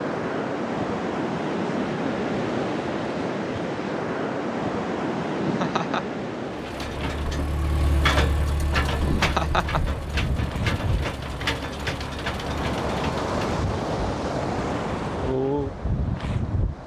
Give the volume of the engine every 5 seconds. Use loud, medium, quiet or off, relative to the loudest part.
off, loud, loud, off.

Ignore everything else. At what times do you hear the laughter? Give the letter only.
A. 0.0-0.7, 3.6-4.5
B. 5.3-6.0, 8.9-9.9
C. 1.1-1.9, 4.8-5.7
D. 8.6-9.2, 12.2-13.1
B.